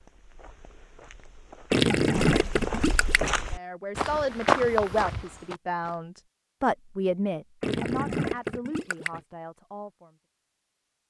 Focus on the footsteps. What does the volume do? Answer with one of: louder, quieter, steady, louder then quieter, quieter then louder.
louder.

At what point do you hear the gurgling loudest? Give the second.
2 s.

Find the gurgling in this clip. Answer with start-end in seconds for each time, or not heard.
1.7-3.4, 7.6-9.2.